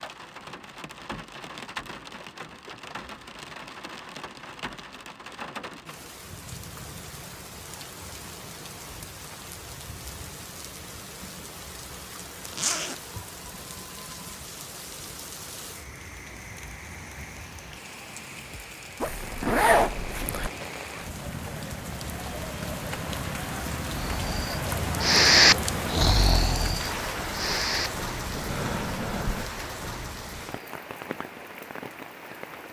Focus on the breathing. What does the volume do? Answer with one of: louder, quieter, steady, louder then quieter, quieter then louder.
quieter.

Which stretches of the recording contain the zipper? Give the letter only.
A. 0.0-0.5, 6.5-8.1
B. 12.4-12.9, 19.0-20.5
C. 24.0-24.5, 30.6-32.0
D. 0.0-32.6
B.